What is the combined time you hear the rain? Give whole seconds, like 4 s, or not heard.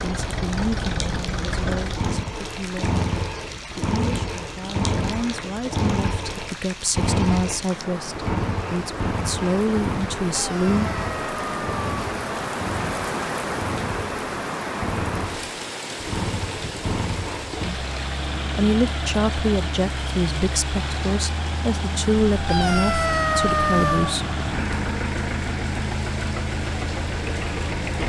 28 s.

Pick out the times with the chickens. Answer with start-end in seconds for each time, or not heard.
not heard.